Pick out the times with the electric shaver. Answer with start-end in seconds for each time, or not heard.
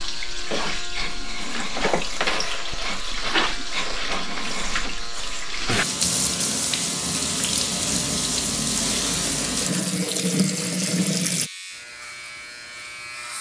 0.0-13.3.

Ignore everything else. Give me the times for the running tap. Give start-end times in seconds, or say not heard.
0.0-11.5.